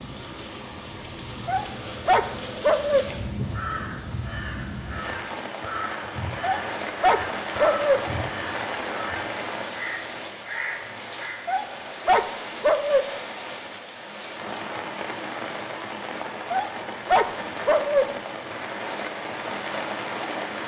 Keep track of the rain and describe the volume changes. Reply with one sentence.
The volume of the rain stays about the same.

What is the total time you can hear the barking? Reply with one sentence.
You can hear the barking for 6 seconds altogether.